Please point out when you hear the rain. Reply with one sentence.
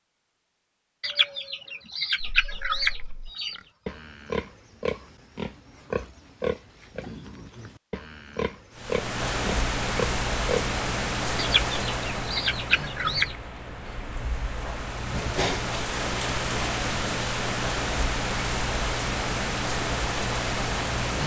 The rain can be heard from 8.8 to 21.2 s.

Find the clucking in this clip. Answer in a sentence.
The clucking can be heard from 1.0 to 3.6 s and from 11.3 to 13.3 s.